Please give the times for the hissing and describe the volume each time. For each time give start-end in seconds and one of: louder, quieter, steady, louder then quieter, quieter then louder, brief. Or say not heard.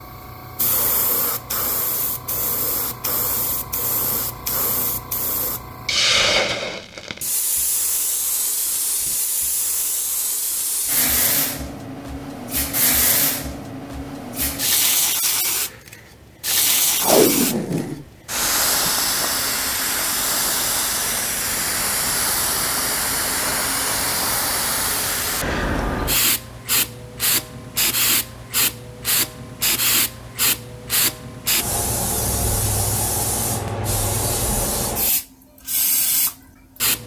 0.0-37.0 steady.